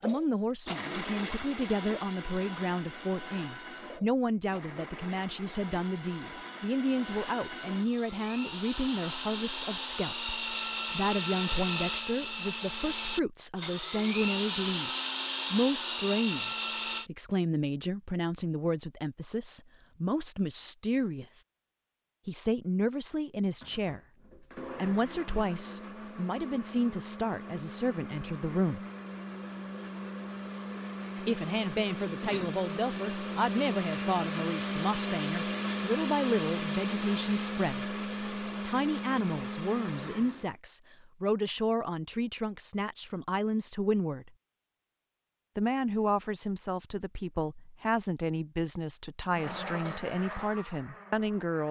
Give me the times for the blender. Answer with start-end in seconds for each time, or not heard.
0.0-17.1, 23.6-40.5, 49.4-51.6.